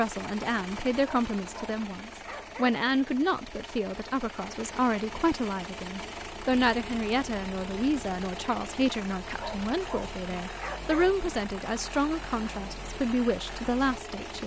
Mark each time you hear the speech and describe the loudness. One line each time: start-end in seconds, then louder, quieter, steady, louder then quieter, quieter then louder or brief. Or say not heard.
0.0-14.4 steady.